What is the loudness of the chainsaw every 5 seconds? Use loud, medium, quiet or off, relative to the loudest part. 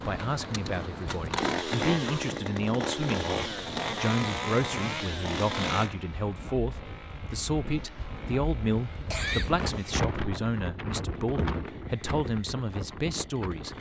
loud, medium, quiet.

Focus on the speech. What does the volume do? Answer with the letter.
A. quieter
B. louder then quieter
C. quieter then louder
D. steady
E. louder
D.